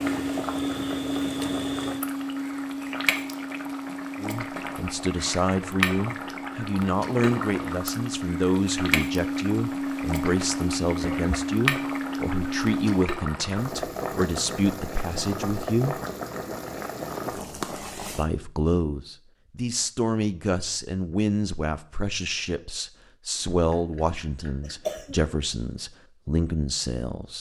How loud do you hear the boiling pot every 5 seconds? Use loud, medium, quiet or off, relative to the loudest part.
loud, loud, loud, loud, off, off.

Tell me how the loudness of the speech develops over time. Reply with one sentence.
The loudness of the speech stays about the same.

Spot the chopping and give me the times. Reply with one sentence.
You can't hear the chopping here.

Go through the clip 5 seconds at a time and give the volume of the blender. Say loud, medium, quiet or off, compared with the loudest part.
loud, loud, loud, off, off, off.